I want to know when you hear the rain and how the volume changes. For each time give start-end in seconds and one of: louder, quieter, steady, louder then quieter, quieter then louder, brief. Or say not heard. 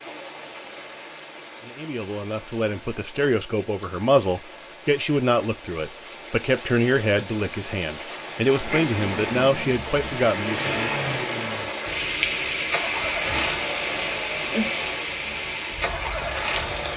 0.0-16.9 louder.